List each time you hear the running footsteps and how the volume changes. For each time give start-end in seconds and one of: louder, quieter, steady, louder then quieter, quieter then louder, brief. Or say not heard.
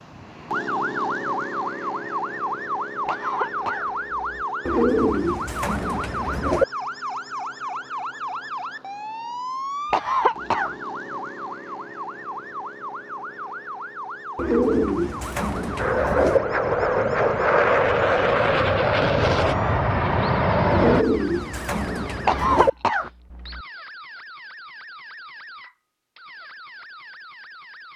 not heard.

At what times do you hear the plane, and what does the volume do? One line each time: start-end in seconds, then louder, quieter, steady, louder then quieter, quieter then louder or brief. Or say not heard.
15.8-21.1 steady.